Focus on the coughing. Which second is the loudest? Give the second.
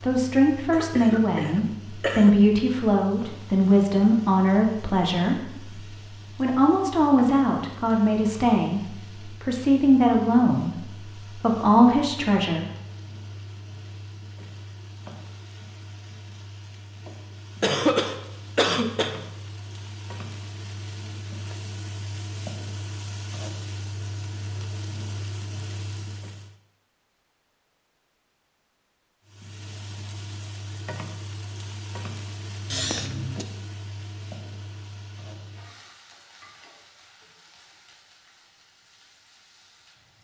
18 s.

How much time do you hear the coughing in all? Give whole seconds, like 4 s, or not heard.
4 s.